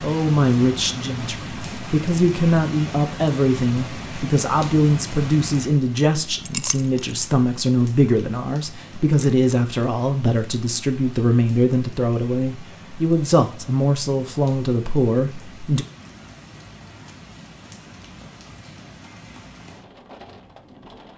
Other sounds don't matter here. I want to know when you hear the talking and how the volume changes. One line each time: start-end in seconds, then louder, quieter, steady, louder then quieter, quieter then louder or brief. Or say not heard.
0.0-15.8 steady.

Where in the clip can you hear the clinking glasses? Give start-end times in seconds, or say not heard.
6.5-7.2.